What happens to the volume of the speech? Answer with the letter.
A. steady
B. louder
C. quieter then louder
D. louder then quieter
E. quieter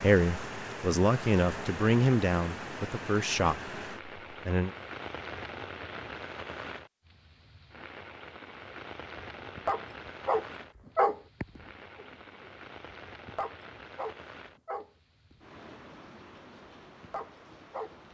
E.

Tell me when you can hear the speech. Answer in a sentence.
You can hear the speech from 0.0 to 4.8 s.